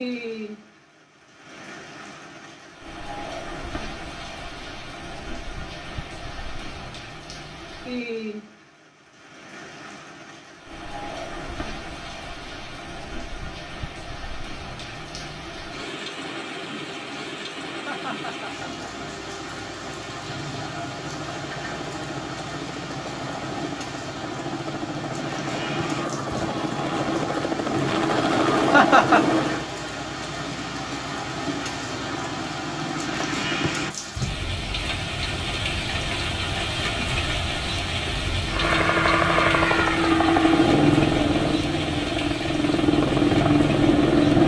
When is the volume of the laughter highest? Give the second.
29 s.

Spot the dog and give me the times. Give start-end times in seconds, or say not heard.
not heard.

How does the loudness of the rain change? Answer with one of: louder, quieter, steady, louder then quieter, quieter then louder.
louder.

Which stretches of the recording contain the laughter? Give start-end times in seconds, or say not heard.
17.7-19.1, 28.7-29.4.